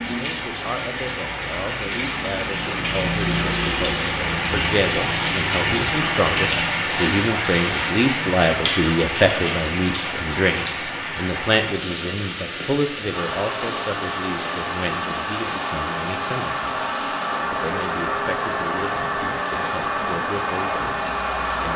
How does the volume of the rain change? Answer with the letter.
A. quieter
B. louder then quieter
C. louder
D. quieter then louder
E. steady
A.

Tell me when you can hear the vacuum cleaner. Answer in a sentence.
The vacuum cleaner can be heard from 13.1 to 21.7 s.